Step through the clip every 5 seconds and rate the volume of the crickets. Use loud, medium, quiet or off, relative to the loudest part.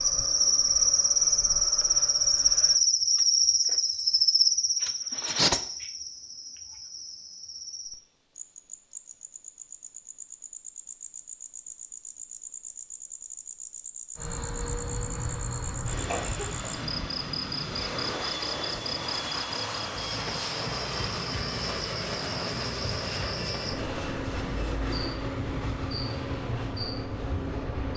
loud, medium, quiet, quiet, quiet, quiet.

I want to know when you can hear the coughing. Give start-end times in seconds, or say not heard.
14.8-16.8.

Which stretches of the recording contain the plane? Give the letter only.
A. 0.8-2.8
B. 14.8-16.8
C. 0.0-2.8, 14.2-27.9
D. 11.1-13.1
C.